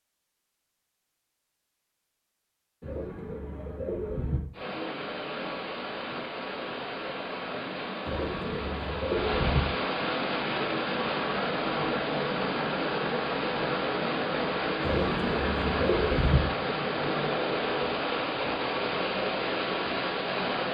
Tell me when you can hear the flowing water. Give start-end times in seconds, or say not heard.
4.5-20.7.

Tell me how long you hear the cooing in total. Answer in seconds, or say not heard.
5 s.